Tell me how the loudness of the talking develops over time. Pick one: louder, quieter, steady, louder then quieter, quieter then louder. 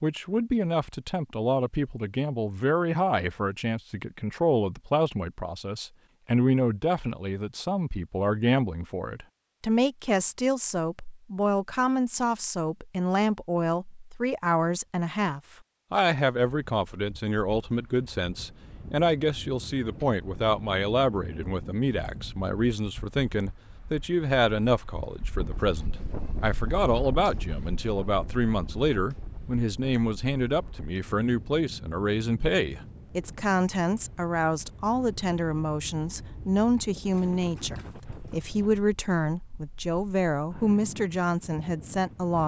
steady.